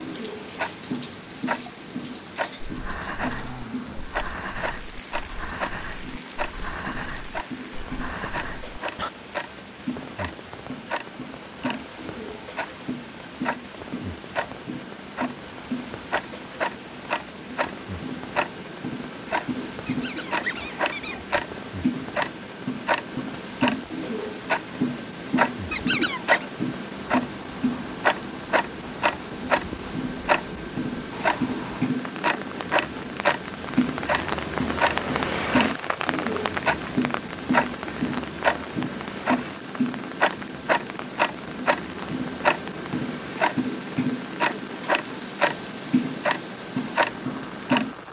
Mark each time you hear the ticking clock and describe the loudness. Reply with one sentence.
The ticking clock can be heard from 0.0 to 48.0 s, getting louder.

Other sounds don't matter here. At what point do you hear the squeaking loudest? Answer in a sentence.
The loudest moment of the squeaking is at 26 seconds.